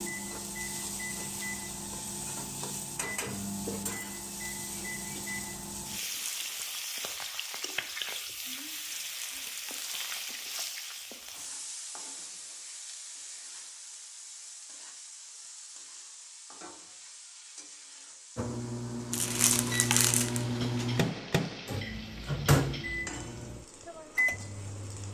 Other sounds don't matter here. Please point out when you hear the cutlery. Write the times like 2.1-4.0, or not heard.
not heard.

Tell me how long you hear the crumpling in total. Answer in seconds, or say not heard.
4 s.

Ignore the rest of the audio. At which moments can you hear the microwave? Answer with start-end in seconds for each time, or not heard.
0.0-6.0, 18.4-25.1.